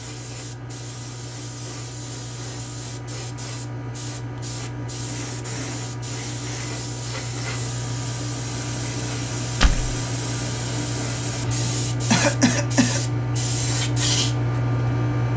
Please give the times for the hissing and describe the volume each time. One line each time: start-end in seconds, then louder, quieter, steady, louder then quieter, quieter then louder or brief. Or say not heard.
0.0-15.3 louder.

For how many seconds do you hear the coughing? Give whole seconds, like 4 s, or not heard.
2 s.